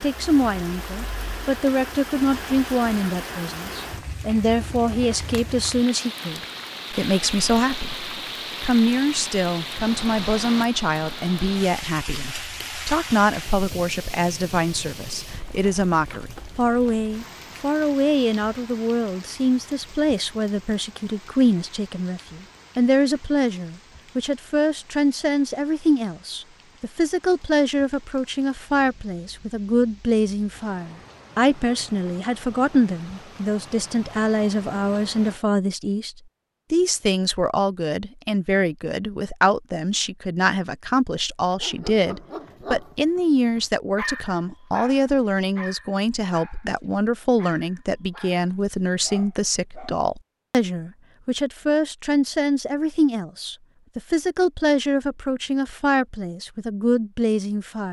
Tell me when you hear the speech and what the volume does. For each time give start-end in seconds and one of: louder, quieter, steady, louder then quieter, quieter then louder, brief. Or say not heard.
0.0-57.8 steady.